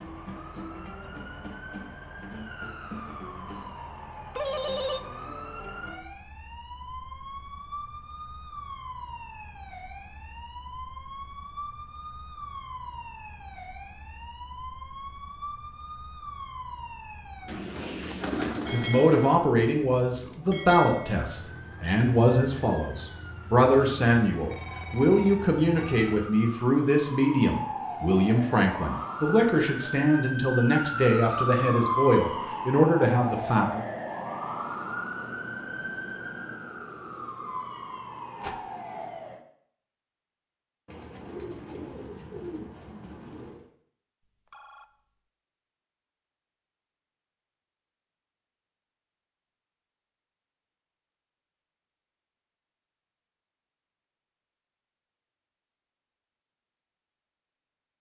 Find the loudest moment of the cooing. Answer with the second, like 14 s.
18 s.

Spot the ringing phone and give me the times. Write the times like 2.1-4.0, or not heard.
4.3-5.0, 24.5-26.1, 44.2-44.9.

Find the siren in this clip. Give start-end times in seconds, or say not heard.
0.0-39.5.